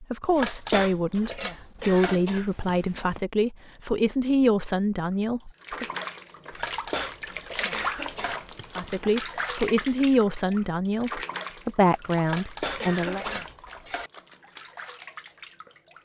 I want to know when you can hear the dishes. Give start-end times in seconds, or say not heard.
0.3-2.2, 6.5-8.4, 12.2-14.1.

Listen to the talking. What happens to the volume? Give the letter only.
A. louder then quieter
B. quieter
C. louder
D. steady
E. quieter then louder
D.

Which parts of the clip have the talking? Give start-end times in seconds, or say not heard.
0.0-5.8, 8.8-13.2.